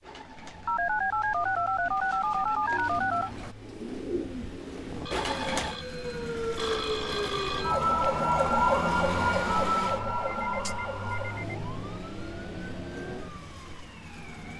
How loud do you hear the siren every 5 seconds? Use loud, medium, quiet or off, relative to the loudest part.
off, loud, medium.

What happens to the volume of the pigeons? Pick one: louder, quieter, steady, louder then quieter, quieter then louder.
louder.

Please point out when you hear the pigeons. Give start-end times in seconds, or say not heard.
0.0-5.8.